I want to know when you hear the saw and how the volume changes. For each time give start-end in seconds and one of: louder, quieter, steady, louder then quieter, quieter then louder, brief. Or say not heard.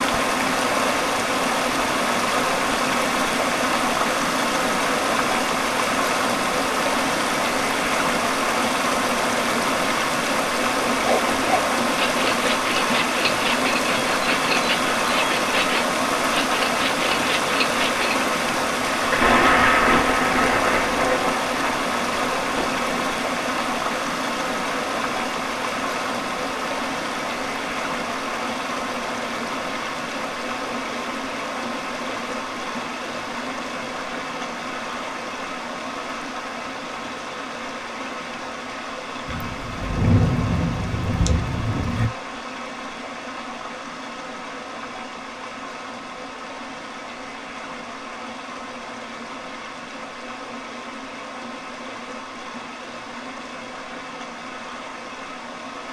10.9-18.1 steady.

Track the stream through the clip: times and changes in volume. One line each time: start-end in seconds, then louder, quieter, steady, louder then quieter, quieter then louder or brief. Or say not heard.
0.0-55.8 quieter.